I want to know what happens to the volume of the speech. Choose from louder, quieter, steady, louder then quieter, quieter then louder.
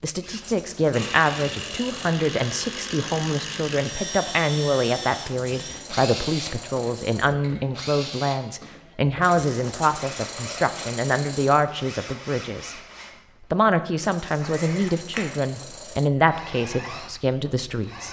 steady.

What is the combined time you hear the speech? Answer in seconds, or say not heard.
17 s.